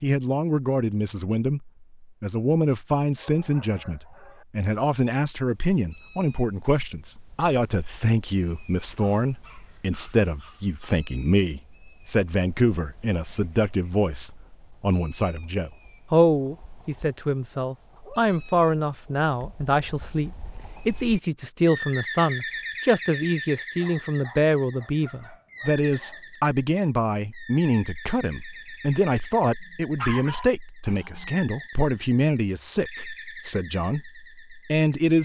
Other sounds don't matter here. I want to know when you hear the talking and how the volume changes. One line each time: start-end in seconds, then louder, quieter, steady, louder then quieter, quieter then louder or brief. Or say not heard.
0.0-35.2 steady.